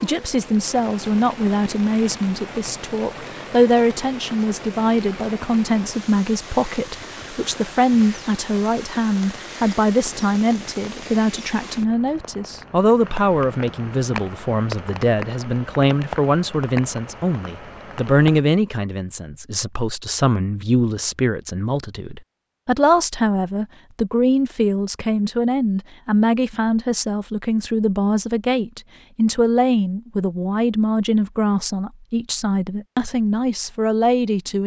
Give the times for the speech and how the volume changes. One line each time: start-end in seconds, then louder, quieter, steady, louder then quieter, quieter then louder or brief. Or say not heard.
0.0-34.6 steady.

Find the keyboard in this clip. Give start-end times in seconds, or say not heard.
not heard.